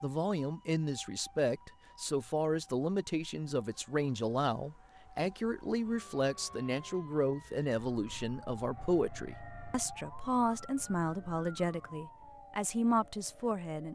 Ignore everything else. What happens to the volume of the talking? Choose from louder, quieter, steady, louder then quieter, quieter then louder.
steady.